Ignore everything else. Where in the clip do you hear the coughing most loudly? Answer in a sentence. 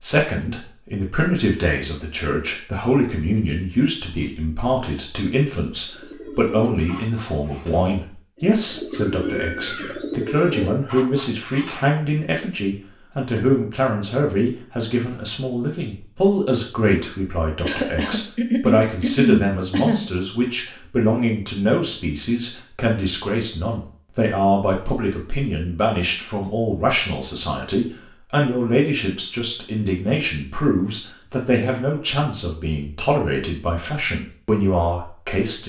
The volume of the coughing peaks at 19 seconds.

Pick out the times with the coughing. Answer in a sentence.
You can hear the coughing from 17.6 to 20.1 s.